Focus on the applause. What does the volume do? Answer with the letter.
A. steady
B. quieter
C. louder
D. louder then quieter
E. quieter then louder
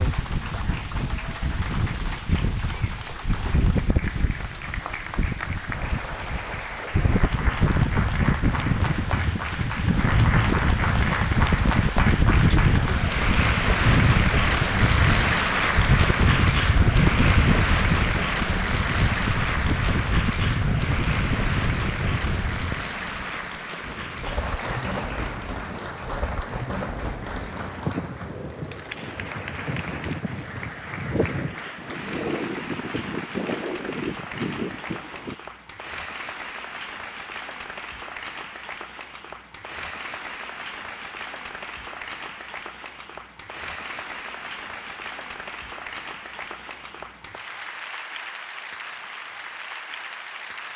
D.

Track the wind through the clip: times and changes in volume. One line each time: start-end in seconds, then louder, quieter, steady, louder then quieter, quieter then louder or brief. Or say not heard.
0.0-35.4 louder then quieter.